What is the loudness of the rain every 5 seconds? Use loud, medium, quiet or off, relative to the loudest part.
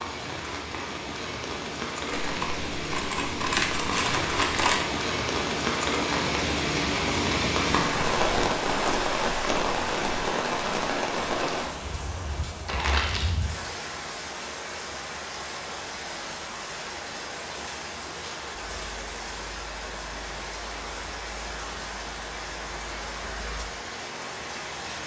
medium, loud, medium, medium, medium.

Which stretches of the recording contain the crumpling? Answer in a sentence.
You can hear the crumpling from 2.1 to 4.8 s and from 12.7 to 13.3 s.